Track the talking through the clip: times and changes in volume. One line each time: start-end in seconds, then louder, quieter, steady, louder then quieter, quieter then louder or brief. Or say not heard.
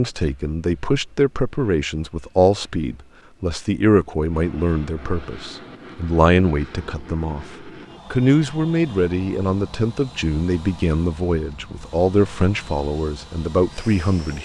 0.0-14.4 steady.